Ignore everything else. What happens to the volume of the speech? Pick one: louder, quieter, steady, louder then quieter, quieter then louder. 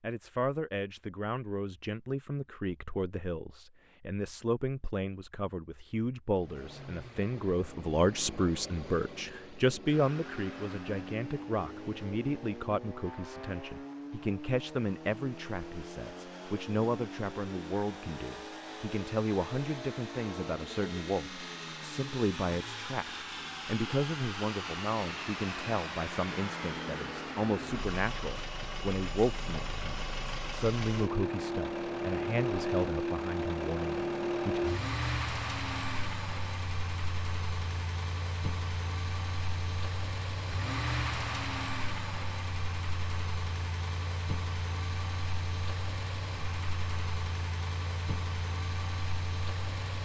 steady.